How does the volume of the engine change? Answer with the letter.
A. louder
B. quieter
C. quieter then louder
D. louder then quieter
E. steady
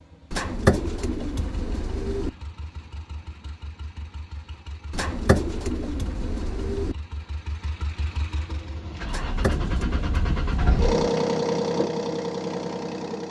A.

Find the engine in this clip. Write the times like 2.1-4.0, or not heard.
0.0-13.2.